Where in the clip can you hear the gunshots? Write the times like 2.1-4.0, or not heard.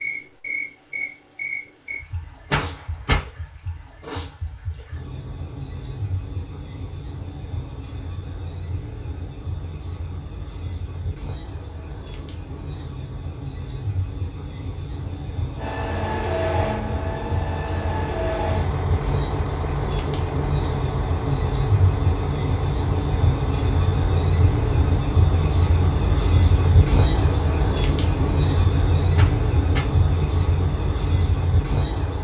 2.5-3.2, 29.1-29.9.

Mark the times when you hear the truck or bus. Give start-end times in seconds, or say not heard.
15.6-32.1.